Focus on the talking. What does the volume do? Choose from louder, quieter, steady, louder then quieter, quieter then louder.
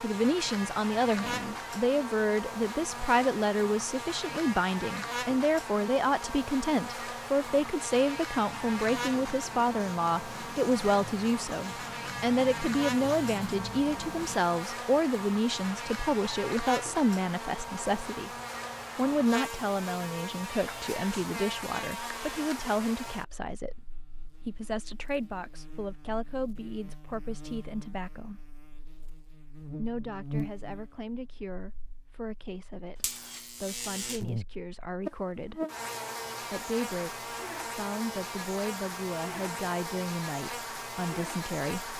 quieter.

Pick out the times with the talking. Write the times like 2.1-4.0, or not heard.
0.0-18.3, 18.9-23.8, 24.4-28.4, 29.8-35.6, 36.5-41.9.